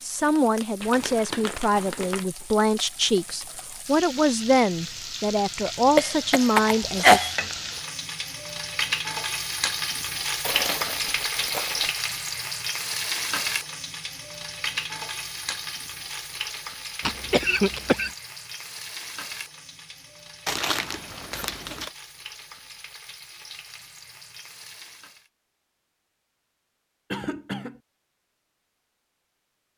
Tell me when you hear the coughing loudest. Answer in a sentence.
The loudest moment of the coughing is at 7 seconds.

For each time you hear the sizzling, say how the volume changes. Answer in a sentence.
You can hear the sizzling from 0.0 to 25.3 s, getting louder then quieter.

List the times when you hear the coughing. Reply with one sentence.
The coughing can be heard from 6.0 to 7.3 s, from 17.0 to 18.1 s and from 27.1 to 27.8 s.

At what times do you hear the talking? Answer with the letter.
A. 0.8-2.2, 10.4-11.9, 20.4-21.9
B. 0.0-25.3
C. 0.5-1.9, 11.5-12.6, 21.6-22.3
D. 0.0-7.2
D.